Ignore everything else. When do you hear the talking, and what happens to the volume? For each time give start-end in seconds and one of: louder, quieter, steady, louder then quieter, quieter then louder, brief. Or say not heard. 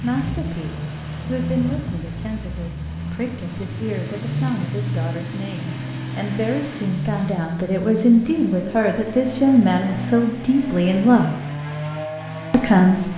0.0-11.3 louder
12.5-13.1 brief.